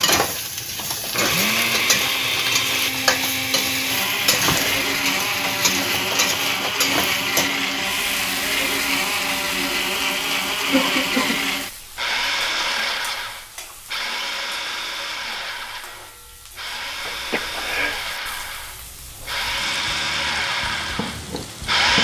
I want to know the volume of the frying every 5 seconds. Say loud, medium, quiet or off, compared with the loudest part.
loud, loud, quiet, quiet, medium.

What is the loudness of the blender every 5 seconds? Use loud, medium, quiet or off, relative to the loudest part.
loud, loud, loud, medium, loud.